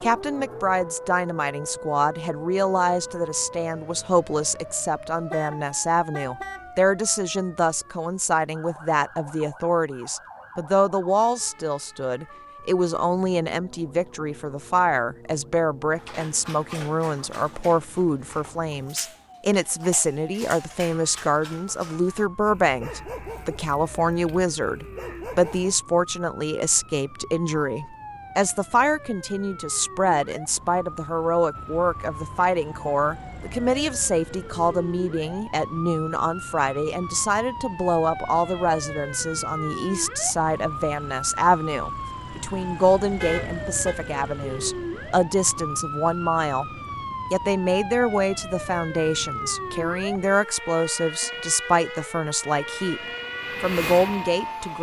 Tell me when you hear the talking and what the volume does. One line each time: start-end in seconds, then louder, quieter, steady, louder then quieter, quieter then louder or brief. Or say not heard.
0.0-46.7 steady
47.3-53.0 steady
53.6-54.7 brief.